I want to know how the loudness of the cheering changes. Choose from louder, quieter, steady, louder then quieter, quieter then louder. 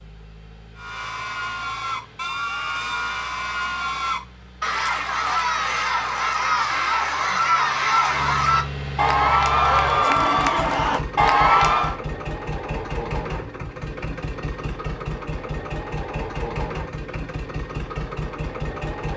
louder.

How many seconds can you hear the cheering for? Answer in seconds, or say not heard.
11 s.